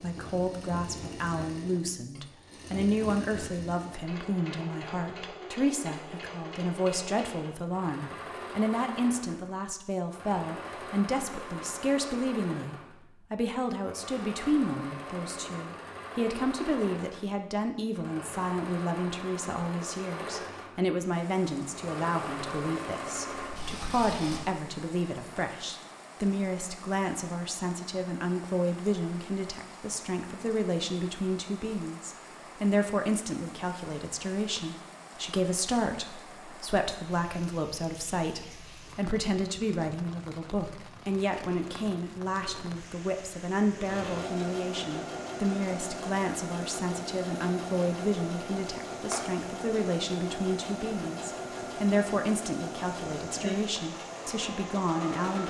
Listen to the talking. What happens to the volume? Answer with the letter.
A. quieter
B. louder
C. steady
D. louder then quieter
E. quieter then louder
C.